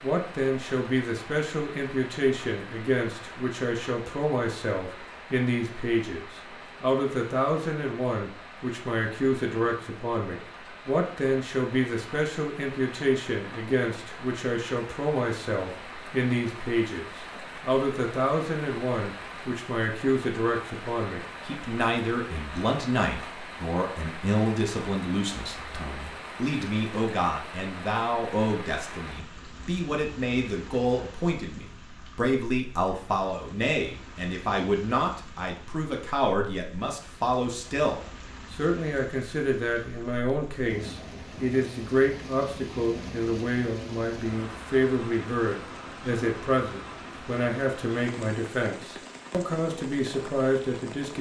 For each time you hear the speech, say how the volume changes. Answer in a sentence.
You can hear the speech from 0.0 to 51.1 s, at a steady volume.